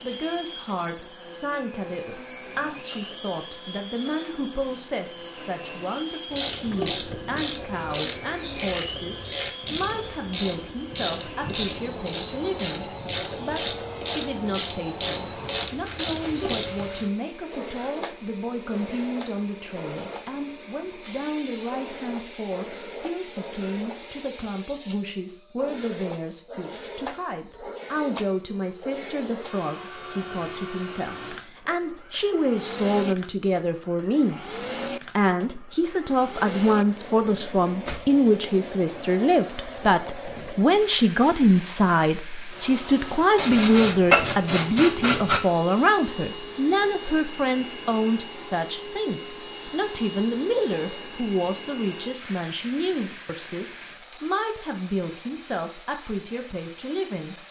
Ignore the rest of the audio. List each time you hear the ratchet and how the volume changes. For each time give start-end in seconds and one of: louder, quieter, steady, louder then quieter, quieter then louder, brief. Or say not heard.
6.3-16.7 steady.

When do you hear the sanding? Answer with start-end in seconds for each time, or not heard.
15.6-17.1, 43.4-45.4.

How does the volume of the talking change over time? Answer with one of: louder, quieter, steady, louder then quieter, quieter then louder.
louder then quieter.